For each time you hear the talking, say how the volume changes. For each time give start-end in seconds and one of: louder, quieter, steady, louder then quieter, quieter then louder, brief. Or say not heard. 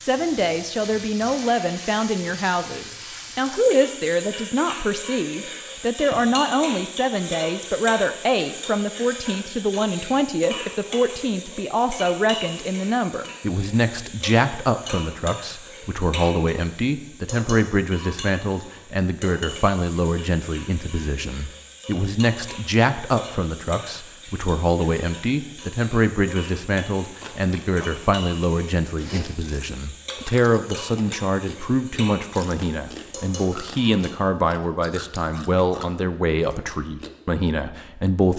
0.1-38.3 steady.